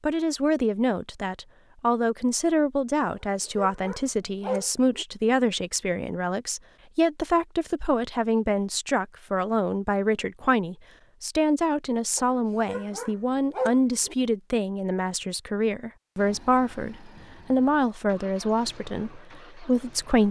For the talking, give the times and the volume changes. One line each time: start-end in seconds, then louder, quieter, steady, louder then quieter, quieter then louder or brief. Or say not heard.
0.0-20.2 steady.